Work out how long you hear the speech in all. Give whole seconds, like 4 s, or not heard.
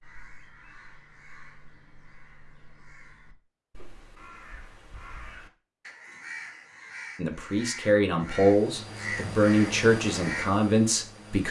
4 s.